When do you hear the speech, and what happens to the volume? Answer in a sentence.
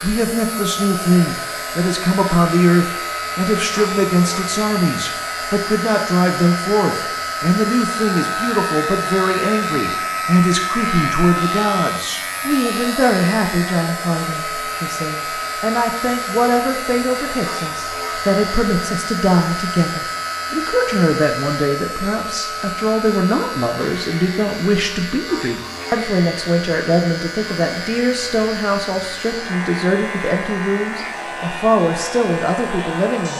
You can hear the speech from 0.0 to 33.3 s, at a steady volume.